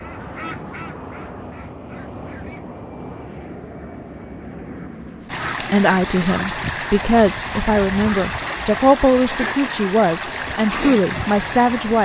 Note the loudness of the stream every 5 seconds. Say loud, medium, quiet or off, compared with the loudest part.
off, loud, loud.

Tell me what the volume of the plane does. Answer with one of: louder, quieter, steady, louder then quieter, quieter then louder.
steady.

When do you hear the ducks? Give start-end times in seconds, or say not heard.
0.0-2.6.